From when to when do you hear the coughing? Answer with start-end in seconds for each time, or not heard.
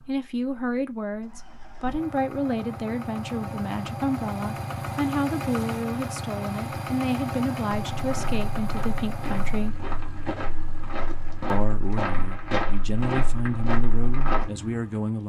not heard.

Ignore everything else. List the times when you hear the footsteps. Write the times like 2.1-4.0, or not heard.
8.0-14.5.